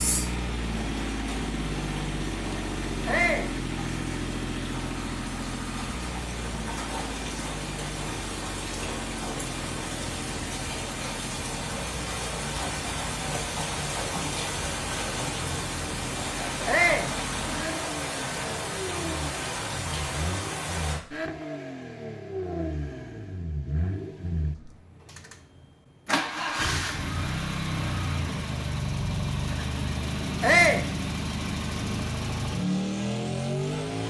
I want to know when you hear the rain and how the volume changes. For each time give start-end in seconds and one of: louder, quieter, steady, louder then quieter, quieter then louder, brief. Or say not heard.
0.0-21.0 louder.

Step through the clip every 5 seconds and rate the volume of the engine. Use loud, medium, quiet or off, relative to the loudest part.
loud, medium, medium, medium, medium, loud, loud.